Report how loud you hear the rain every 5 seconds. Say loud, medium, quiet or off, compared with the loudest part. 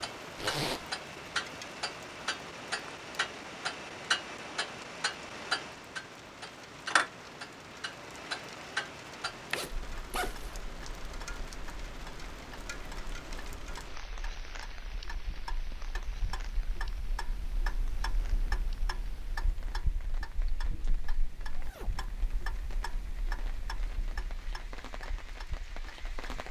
loud, loud, loud, medium, medium, loud.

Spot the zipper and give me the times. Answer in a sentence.
You can hear the zipper from 0.3 to 0.8 s, from 9.5 to 10.5 s and from 21.4 to 22.3 s.